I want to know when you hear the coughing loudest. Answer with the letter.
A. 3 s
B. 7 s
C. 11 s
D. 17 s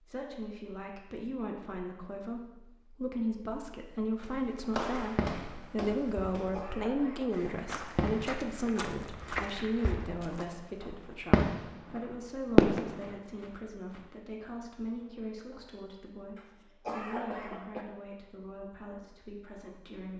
D.